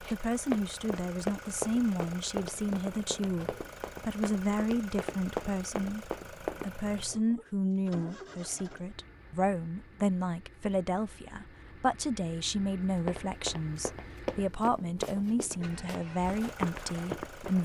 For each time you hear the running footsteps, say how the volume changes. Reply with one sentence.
You can hear the running footsteps from 0.0 to 6.7 s, getting quieter then louder; and from 12.9 to 17.5 s, getting quieter then louder.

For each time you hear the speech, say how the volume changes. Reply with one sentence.
You can hear the speech from 0.1 to 17.5 s, at a steady volume.